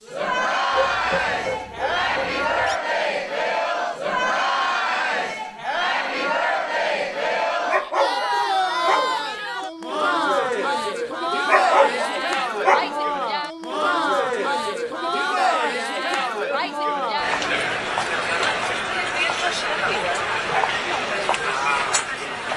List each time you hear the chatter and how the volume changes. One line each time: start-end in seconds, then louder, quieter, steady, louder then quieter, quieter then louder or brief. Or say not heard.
0.1-22.5 steady.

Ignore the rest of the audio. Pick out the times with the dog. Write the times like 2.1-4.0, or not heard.
0.7-2.8, 7.7-9.2, 11.4-13.1, 19.8-20.8.